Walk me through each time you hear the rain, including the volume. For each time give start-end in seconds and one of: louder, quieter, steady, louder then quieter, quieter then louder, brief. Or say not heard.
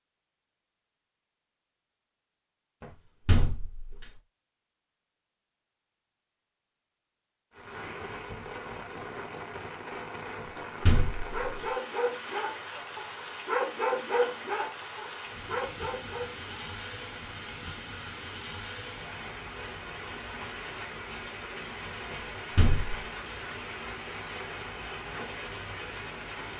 7.5-26.5 steady.